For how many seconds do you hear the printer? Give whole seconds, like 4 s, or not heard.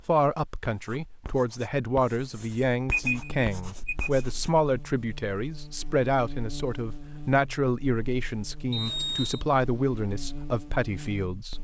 not heard.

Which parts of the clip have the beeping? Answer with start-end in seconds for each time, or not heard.
2.9-4.2, 8.7-9.4.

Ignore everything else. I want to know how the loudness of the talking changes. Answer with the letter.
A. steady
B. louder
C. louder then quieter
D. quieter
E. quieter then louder
A.